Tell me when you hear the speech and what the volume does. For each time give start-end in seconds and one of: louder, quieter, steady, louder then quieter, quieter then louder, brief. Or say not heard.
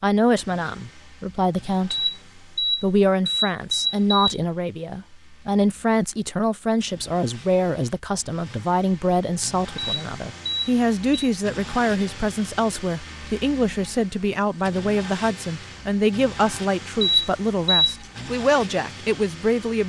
0.0-19.8 steady.